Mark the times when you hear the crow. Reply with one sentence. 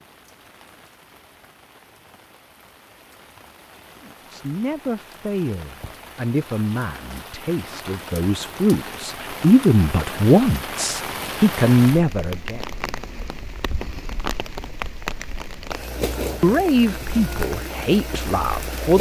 You can't hear the crow here.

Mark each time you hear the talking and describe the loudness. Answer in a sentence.
You can hear the talking from 4.0 to 12.7 s, getting louder; and briefly from 16.4 to 18.9 s.